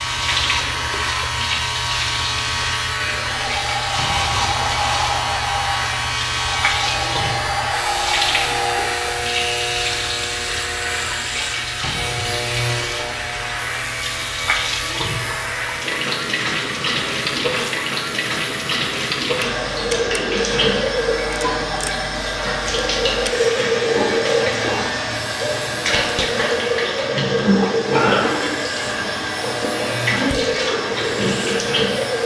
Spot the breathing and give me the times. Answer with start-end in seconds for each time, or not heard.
3.3-9.0.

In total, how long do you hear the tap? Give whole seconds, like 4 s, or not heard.
32 s.